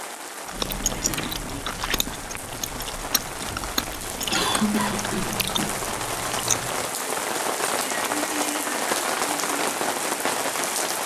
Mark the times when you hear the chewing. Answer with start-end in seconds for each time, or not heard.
0.5-6.9.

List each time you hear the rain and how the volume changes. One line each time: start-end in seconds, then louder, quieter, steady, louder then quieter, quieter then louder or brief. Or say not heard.
0.0-11.0 louder.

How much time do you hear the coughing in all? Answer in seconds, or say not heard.
2 s.